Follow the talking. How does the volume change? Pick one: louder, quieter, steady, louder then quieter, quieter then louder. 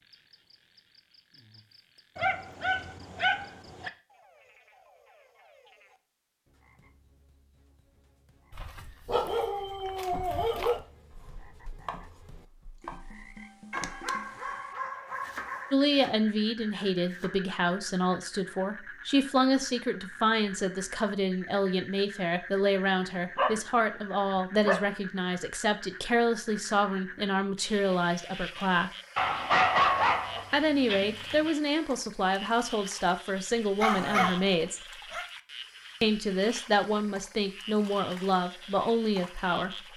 steady.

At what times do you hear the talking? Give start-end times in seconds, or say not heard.
15.7-28.9, 30.5-34.8, 36.0-39.9.